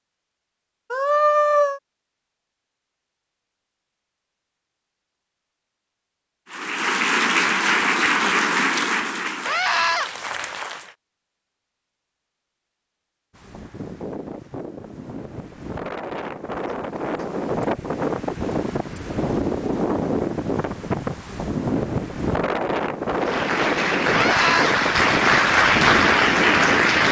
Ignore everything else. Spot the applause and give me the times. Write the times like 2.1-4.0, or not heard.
6.5-10.9, 23.1-27.0.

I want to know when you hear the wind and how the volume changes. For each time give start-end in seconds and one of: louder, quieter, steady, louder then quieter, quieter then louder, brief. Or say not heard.
13.3-27.0 louder.